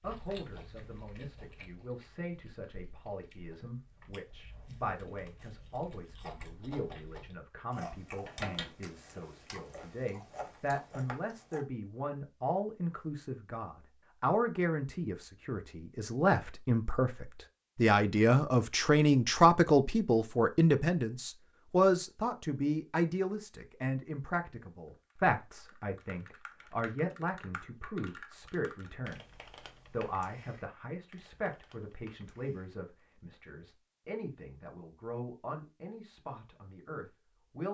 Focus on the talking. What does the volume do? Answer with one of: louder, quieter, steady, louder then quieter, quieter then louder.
louder then quieter.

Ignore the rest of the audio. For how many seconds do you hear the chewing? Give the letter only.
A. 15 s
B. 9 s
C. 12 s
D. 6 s
C.